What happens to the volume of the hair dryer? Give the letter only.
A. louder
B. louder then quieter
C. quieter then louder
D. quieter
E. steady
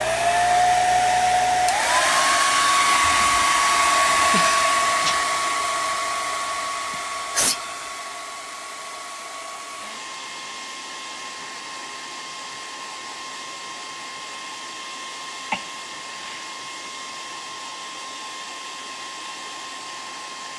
D.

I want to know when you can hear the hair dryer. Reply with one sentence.
The hair dryer can be heard from 0.0 to 20.5 s.